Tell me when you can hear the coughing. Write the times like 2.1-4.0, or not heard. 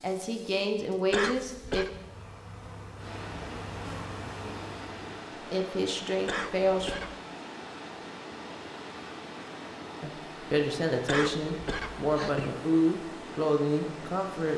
1.1-1.9, 6.2-7.2, 11.1-12.5.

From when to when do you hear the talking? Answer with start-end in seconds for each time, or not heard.
0.0-1.9, 5.5-7.0, 10.0-14.5.